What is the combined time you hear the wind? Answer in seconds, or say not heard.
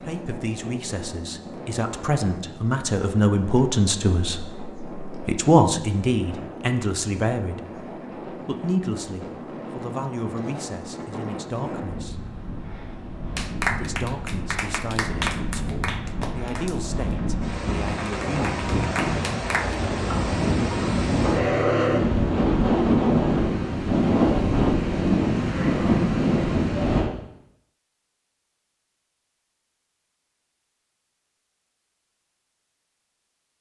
27 s.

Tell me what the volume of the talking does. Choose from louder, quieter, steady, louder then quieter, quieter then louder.
louder then quieter.